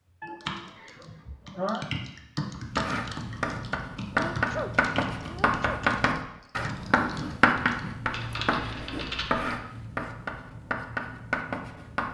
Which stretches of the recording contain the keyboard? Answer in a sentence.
You can hear the keyboard from 0.1 to 9.6 s.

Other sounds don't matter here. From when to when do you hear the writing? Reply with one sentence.
You can hear the writing from 2.6 to 12.1 s.